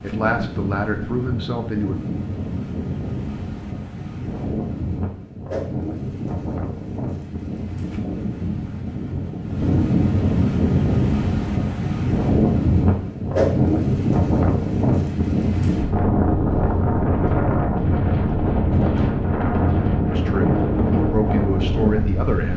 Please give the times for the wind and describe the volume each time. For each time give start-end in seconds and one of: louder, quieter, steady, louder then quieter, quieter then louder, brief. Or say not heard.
0.0-22.5 louder.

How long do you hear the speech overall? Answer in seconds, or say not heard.
4 s.